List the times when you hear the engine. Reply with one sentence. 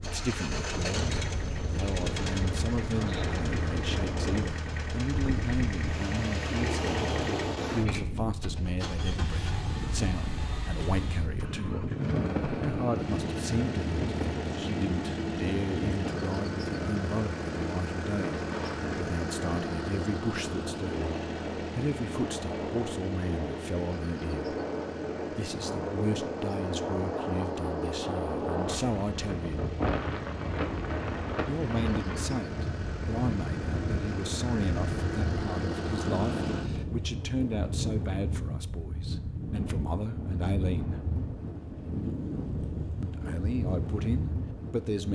You can hear the engine from 0.0 to 36.9 s.